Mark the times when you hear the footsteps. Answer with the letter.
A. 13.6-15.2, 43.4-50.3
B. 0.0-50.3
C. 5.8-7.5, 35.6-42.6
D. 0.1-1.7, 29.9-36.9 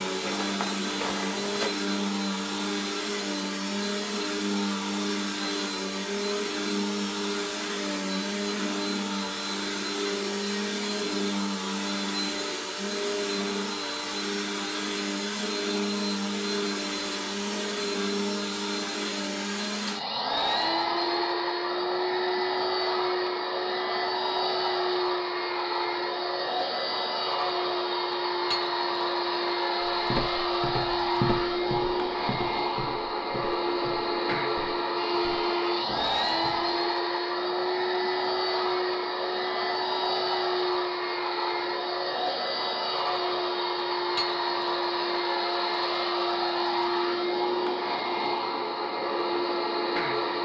D.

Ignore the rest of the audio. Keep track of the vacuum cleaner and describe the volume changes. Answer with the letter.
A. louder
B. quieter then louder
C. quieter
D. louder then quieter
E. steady
E.